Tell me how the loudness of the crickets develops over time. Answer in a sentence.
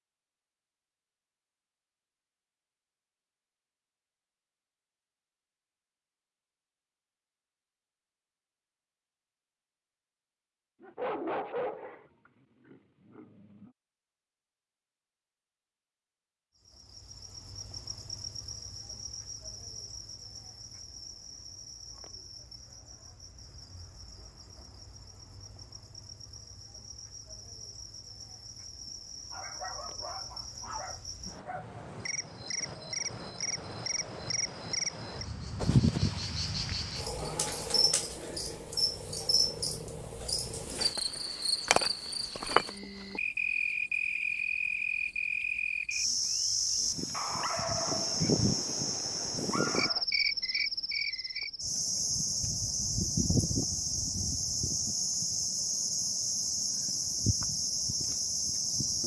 The loudness of the crickets goes up.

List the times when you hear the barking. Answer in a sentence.
The barking can be heard from 10.8 to 12.1 s, from 12.7 to 13.7 s, from 28.9 to 31.6 s and from 47.1 to 50.0 s.